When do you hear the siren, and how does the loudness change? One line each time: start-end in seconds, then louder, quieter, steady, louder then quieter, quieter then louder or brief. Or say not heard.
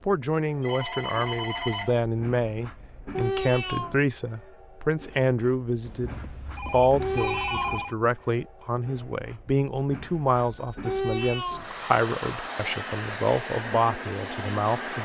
not heard.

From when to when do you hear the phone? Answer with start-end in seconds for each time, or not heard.
0.6-2.0, 5.8-8.0, 10.3-10.8.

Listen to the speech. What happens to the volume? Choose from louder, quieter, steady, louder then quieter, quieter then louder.
steady.